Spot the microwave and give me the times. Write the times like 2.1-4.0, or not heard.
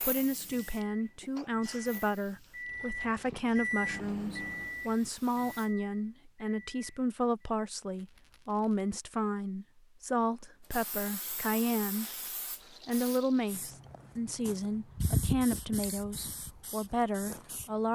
0.0-7.5.